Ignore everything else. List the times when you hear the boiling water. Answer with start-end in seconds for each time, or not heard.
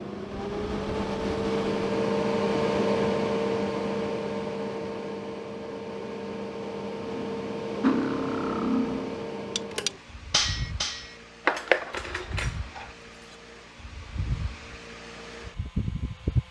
not heard.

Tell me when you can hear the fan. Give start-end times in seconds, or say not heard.
0.0-16.4.